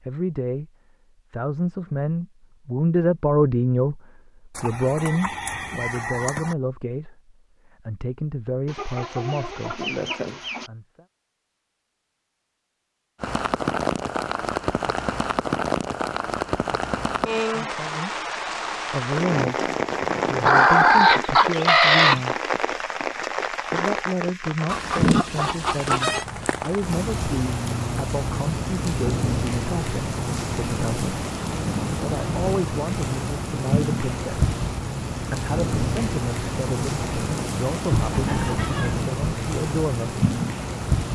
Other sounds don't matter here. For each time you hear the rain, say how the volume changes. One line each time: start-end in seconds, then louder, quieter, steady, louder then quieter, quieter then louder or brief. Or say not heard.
13.2-41.0 steady.